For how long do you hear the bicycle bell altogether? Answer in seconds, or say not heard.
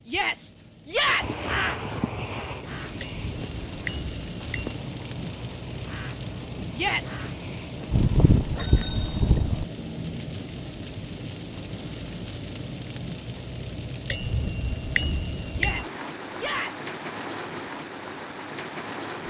5 s.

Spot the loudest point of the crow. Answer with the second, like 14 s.
2 s.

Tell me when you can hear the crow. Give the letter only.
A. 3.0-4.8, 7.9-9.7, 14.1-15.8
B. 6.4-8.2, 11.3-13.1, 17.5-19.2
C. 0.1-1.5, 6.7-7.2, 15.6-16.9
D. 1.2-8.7
D.